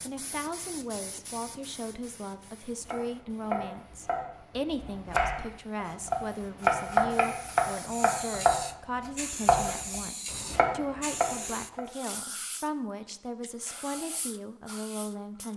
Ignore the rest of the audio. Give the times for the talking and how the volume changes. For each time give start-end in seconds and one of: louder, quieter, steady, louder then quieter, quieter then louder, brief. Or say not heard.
0.0-15.5 steady.